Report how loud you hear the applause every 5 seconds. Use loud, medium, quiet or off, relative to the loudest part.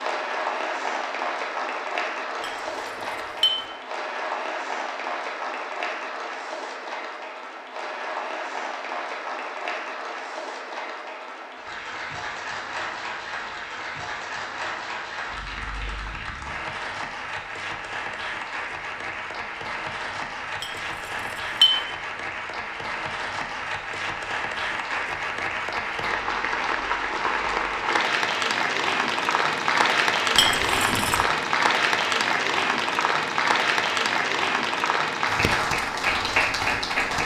medium, medium, medium, medium, medium, loud, loud, loud.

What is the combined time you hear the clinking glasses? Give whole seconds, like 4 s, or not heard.
3 s.